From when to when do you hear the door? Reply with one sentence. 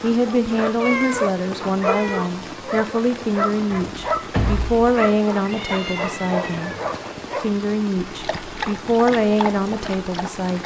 The door can be heard from 3.7 to 4.9 s.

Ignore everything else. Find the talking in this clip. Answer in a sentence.
You can hear the talking from 0.0 to 6.8 s and from 7.4 to 10.6 s.